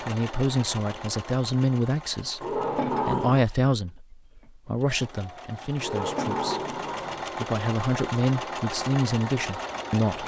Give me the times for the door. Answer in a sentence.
You can hear the door from 2.4 to 3.5 s and from 5.8 to 7.2 s.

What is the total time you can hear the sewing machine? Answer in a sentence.
You can hear the sewing machine for 10 seconds altogether.